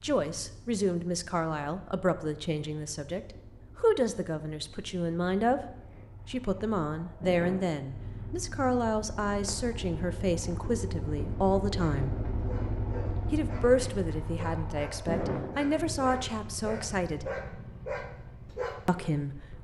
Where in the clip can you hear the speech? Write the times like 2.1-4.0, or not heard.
0.0-12.2, 13.3-17.3, 18.9-19.5.